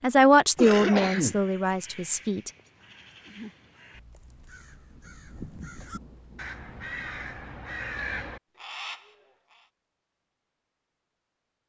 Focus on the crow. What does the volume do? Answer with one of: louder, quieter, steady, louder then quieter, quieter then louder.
louder.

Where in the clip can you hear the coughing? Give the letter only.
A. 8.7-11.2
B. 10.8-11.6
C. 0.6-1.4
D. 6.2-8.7
C.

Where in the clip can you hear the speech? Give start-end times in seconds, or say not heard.
0.0-2.5.